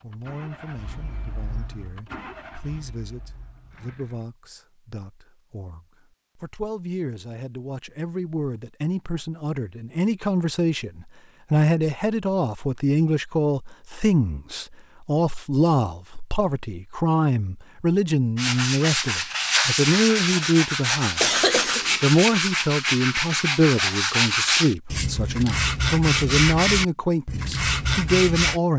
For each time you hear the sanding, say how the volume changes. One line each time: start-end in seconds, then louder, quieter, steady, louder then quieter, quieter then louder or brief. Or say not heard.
18.4-28.6 steady.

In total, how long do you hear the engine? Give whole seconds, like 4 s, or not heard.
4 s.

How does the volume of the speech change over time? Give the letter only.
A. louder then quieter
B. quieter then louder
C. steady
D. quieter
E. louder
E.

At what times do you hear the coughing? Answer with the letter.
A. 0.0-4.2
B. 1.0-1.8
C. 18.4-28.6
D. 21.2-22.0
D.